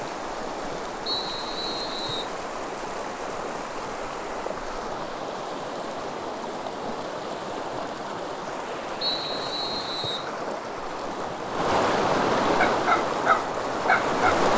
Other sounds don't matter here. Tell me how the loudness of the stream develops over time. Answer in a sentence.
The loudness of the stream goes up.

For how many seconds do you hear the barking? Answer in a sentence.
You can hear the barking for 2 seconds altogether.